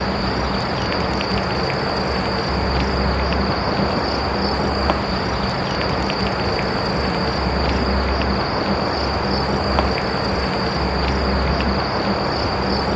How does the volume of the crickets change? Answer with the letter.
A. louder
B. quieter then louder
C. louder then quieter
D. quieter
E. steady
E.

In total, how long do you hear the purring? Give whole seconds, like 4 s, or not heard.
13 s.